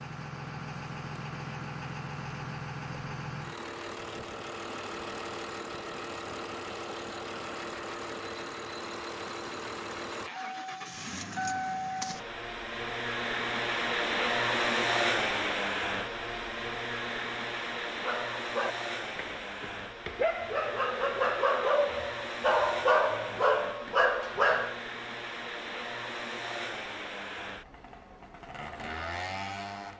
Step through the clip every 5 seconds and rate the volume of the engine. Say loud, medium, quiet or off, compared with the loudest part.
medium, medium, loud, loud, medium, medium.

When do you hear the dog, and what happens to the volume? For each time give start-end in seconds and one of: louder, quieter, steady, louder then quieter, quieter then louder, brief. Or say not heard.
17.9-24.8 louder.